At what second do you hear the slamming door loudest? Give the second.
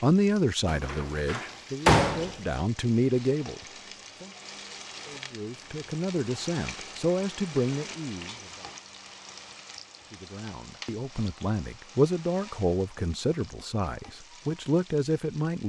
2 s.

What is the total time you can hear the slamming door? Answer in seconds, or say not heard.
2 s.